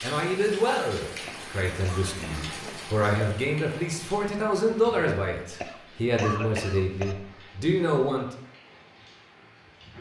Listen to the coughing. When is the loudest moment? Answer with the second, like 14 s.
6 s.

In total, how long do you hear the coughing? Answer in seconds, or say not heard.
3 s.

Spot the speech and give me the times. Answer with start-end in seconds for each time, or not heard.
0.0-8.2.